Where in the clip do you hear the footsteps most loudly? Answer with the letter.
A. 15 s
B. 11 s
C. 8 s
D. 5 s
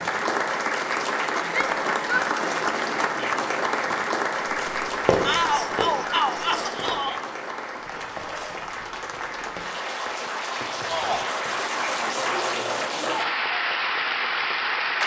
D.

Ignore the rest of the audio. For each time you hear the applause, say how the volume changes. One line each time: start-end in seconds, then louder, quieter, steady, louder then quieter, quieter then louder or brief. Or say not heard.
0.0-15.0 quieter then louder.